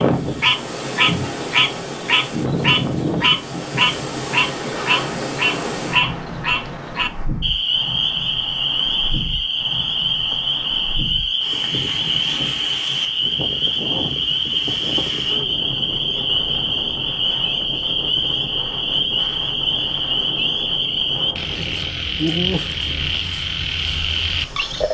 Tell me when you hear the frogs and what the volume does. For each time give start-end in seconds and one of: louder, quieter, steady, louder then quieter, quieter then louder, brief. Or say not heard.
0.1-24.8 steady.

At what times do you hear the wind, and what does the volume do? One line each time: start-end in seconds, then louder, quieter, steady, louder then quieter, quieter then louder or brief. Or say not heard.
0.0-24.8 quieter.